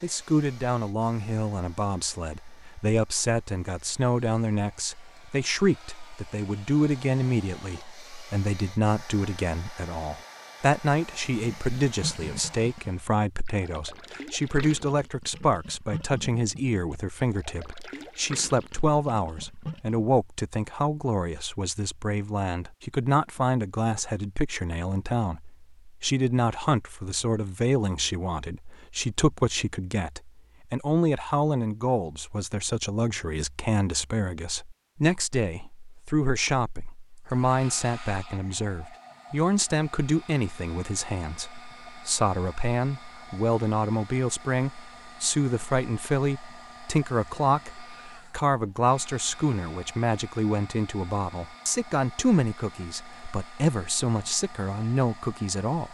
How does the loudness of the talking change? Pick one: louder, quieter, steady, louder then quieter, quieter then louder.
steady.